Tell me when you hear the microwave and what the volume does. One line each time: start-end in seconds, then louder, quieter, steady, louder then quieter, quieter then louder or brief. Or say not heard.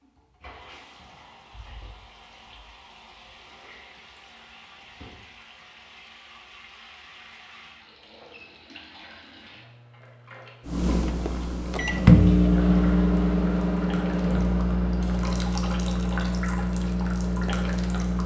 10.7-18.2 quieter.